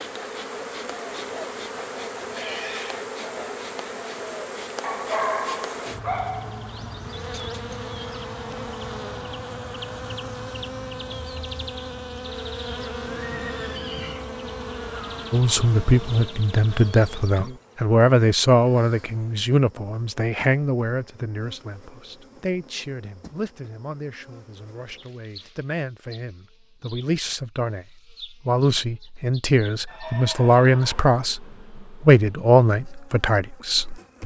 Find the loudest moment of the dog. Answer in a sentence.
The volume of the dog peaks at 5 seconds.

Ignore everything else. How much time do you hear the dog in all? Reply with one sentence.
You can hear the dog for 2 seconds altogether.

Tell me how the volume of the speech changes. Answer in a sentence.
The loudness of the speech goes down, then up.